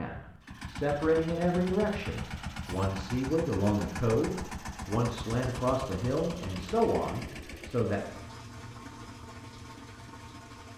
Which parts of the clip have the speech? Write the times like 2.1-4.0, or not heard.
0.0-8.0.